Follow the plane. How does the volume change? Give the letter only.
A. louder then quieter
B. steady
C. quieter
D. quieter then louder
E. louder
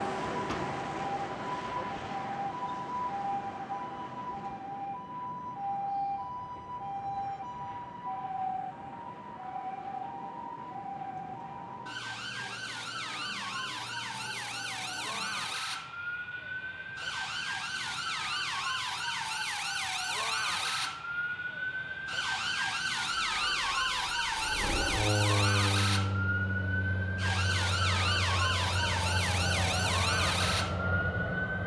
E.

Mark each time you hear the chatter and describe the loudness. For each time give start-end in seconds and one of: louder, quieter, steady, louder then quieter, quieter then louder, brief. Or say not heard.
not heard.